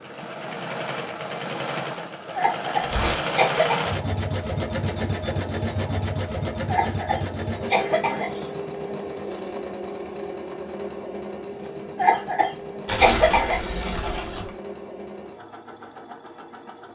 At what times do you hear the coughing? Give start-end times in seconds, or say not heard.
2.4-3.9, 6.7-8.3, 11.9-13.6.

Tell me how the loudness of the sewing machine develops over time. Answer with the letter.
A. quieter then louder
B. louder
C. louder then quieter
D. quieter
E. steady
D.